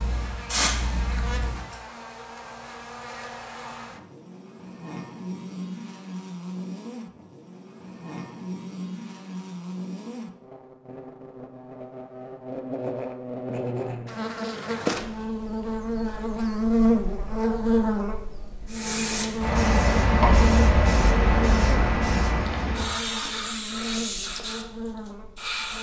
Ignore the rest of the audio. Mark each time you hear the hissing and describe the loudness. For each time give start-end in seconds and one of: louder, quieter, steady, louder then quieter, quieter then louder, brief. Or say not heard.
0.0-1.7 brief
18.6-25.7 quieter.